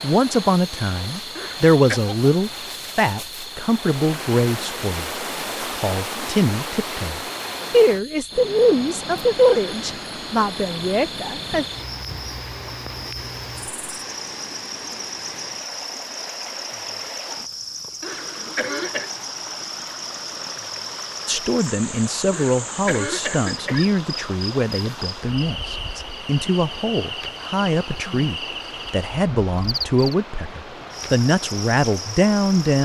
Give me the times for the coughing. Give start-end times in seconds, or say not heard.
1.4-2.0, 18.0-19.2, 22.3-23.9.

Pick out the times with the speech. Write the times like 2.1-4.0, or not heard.
0.0-5.1, 5.7-11.7, 21.2-32.7.